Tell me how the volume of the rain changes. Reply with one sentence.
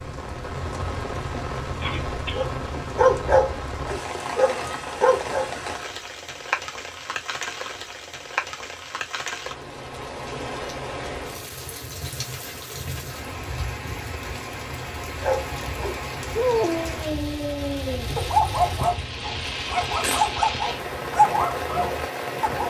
The volume of the rain stays about the same.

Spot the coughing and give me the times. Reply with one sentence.
You can hear the coughing from 1.8 to 2.5 s.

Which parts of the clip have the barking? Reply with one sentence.
You can hear the barking from 2.4 to 5.5 s and from 15.2 to 22.6 s.